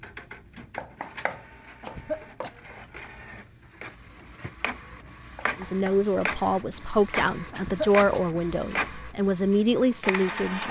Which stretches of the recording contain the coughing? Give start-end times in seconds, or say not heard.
1.8-2.5, 7.5-8.0.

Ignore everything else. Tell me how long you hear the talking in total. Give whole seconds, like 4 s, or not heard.
5 s.